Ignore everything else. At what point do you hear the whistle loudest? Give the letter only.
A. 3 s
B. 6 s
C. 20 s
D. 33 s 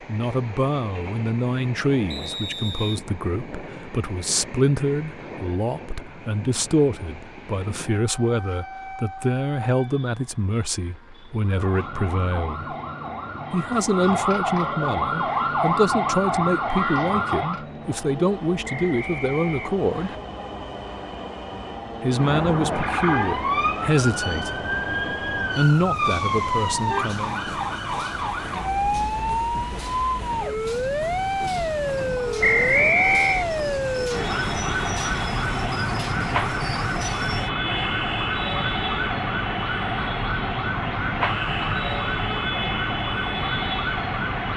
D.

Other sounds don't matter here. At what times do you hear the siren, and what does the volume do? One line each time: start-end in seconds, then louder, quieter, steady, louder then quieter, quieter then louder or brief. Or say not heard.
11.4-17.6 louder
22.1-44.5 steady.